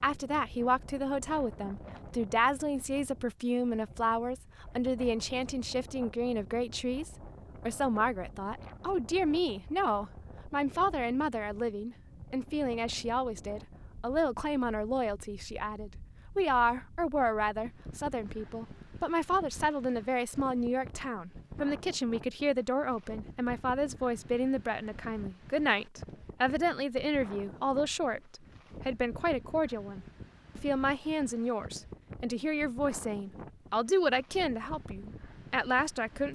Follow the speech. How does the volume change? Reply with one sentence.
The loudness of the speech stays about the same.